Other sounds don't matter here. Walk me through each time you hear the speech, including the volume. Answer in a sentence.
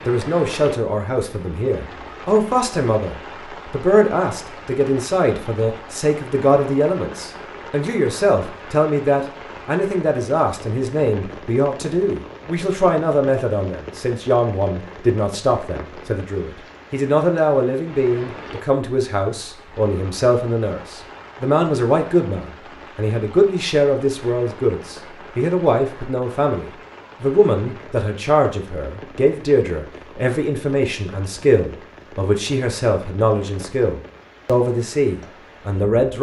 The speech can be heard from 0.1 to 36.1 s, at a steady volume.